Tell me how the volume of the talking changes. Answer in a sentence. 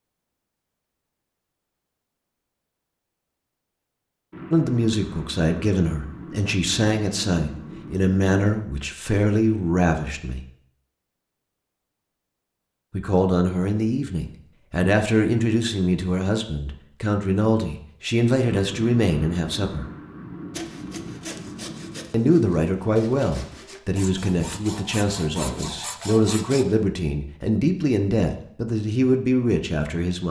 The volume of the talking stays about the same.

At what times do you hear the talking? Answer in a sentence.
The talking can be heard from 4.5 to 10.4 s, from 12.9 to 19.9 s and from 22.1 to 30.2 s.